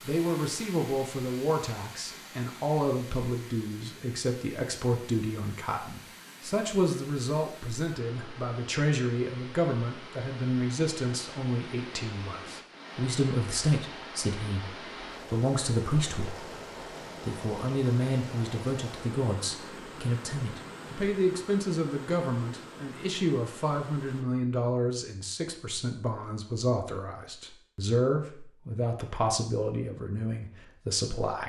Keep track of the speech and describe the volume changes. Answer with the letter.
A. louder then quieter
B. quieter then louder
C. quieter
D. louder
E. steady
E.